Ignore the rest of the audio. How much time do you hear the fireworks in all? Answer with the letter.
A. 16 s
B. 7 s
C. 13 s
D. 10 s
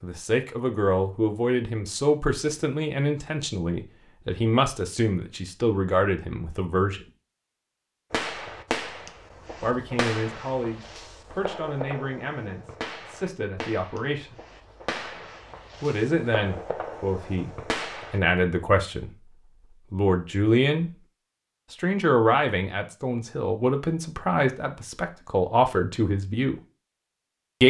D.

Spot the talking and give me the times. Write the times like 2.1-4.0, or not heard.
0.0-7.0, 9.6-14.3, 15.8-20.9, 21.7-26.6.